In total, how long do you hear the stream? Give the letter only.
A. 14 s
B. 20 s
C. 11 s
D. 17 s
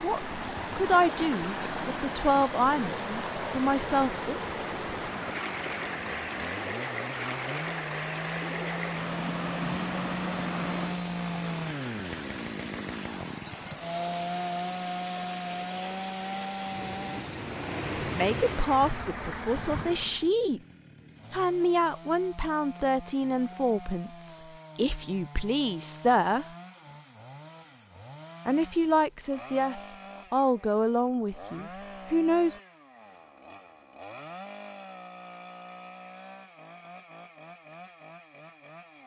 B.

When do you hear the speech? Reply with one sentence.
The speech can be heard from 0.0 to 4.4 s, from 18.1 to 20.6 s, from 21.3 to 26.4 s and from 28.4 to 32.5 s.